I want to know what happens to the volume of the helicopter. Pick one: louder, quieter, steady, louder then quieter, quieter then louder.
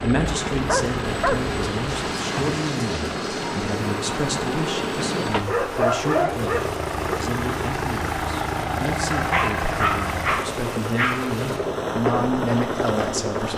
steady.